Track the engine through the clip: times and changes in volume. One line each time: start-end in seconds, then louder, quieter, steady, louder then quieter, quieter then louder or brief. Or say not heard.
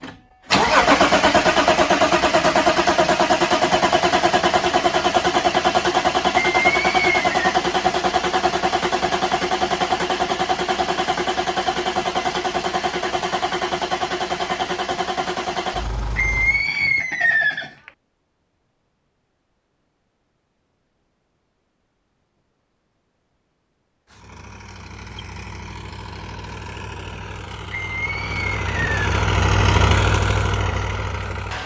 0.0-16.6 quieter
24.1-31.6 louder.